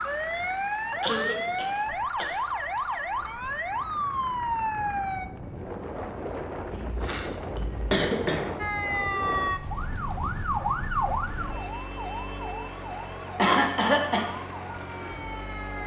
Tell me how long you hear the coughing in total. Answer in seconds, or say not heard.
4 s.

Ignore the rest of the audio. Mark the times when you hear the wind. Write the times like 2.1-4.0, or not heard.
0.0-10.4.